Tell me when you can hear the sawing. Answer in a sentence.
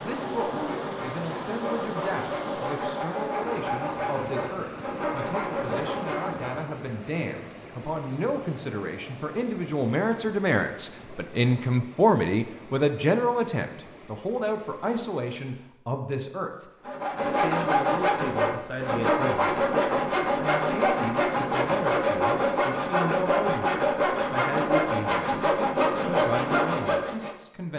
The sawing can be heard from 0.0 to 6.7 s and from 16.9 to 27.4 s.